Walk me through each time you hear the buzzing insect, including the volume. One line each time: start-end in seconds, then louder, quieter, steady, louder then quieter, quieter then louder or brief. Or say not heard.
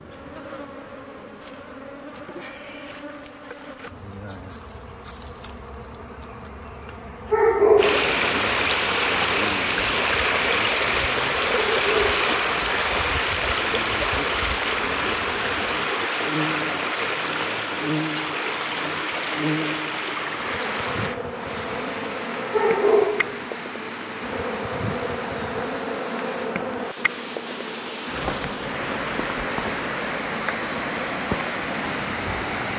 0.0-32.7 louder.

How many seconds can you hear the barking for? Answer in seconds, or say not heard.
2 s.